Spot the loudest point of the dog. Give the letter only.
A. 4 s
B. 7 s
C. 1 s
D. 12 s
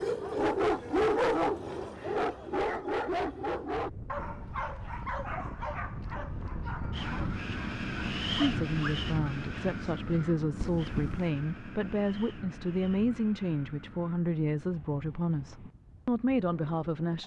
C.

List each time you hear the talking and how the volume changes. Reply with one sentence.
The talking can be heard from 8.4 to 17.2 s, at a steady volume.